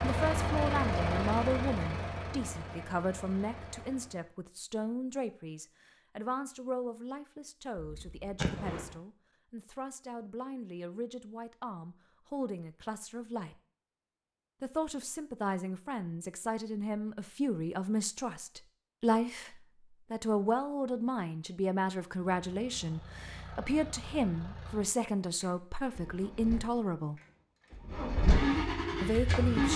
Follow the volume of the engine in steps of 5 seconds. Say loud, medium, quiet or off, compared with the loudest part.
loud, off, off, off, quiet, loud.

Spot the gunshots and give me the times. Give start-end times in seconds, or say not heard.
7.8-8.9.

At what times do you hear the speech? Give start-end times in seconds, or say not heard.
0.0-13.6, 14.6-27.2, 29.0-29.7.